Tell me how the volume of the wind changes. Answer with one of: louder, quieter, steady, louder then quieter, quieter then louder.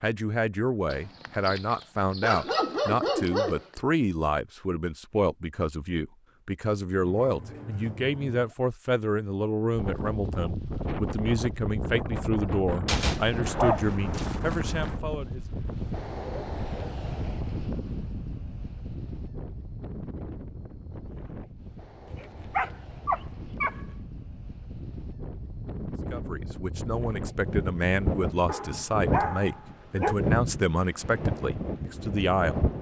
quieter then louder.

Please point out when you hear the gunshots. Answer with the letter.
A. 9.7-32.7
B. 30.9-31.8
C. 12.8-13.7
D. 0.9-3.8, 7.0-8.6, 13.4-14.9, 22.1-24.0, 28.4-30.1
C.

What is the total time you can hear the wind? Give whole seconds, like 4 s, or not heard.
23 s.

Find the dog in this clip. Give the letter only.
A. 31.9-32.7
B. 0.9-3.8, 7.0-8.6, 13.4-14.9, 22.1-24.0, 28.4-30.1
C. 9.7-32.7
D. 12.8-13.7
B.